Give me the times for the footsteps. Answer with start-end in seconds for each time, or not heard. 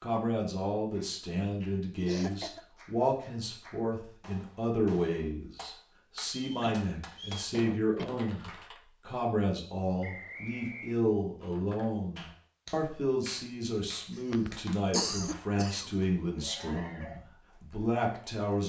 not heard.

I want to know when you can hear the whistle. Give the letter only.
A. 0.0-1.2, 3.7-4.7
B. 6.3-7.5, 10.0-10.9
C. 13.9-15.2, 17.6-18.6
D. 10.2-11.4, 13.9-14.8
B.